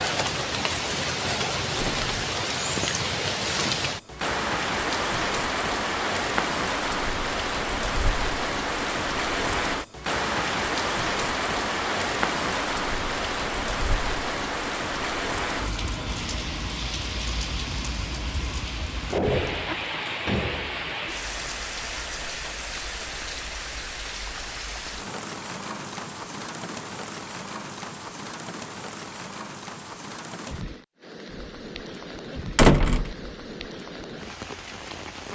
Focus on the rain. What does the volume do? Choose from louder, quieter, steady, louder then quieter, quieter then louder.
quieter.